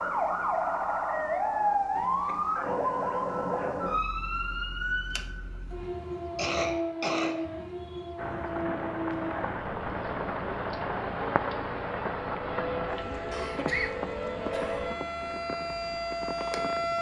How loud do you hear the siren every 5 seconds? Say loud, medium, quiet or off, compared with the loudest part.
loud, medium, medium, loud.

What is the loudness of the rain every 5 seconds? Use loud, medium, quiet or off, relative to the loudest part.
off, loud, loud, medium.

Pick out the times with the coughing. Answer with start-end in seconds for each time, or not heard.
1.9-2.6, 6.3-8.1, 13.3-14.9.